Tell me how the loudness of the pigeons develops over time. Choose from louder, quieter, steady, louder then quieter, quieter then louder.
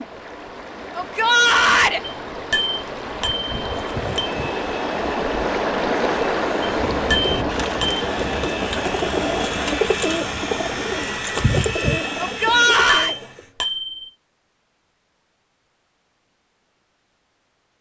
louder.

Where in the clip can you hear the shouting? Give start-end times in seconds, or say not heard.
0.9-2.0, 12.2-13.2.